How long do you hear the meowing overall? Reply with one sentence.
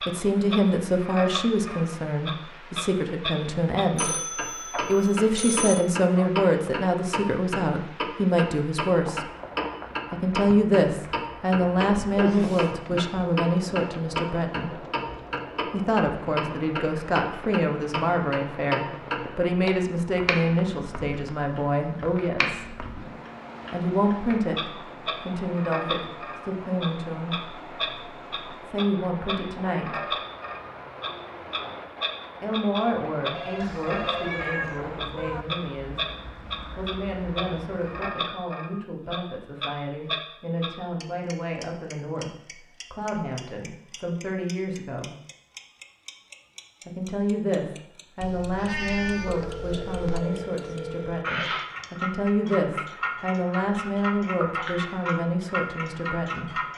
You can hear the meowing for 5 seconds altogether.